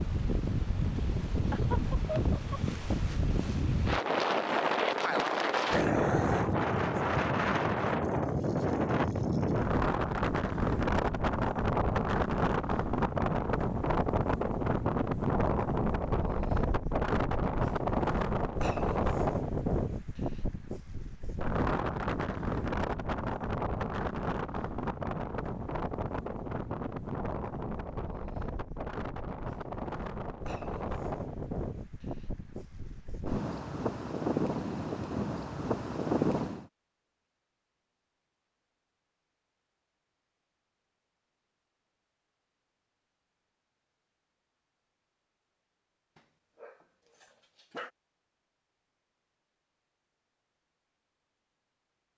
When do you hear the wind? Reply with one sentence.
You can hear the wind from 0.0 to 36.7 s.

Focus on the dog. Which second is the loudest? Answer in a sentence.
The volume of the dog peaks at 6 seconds.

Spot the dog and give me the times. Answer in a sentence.
You can hear the dog from 5.7 to 6.5 s and from 46.1 to 47.9 s.